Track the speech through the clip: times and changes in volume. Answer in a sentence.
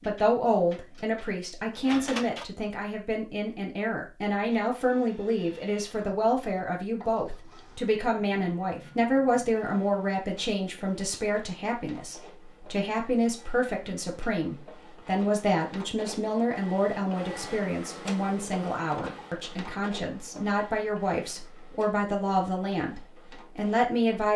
The speech can be heard from 0.0 to 24.3 s, at a steady volume.